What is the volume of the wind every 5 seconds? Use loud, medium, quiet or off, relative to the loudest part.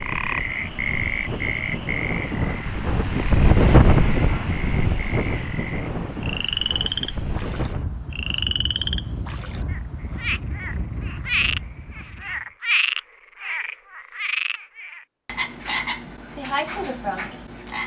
loud, medium, quiet, off.